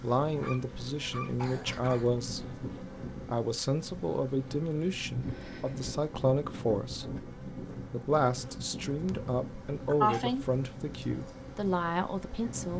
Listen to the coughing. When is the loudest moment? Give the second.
10 s.